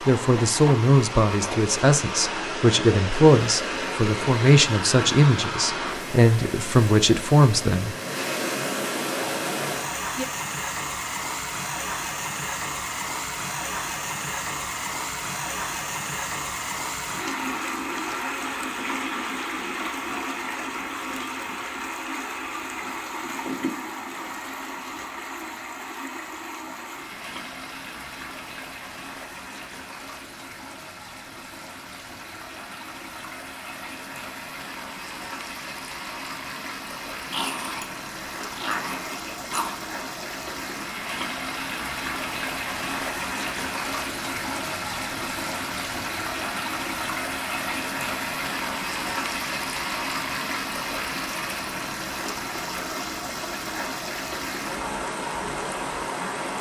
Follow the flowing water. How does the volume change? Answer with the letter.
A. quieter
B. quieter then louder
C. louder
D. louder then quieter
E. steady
B.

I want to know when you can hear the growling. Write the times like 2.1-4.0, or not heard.
37.3-39.8.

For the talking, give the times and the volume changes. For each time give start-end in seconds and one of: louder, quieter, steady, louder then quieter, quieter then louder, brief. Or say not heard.
0.1-8.0 steady.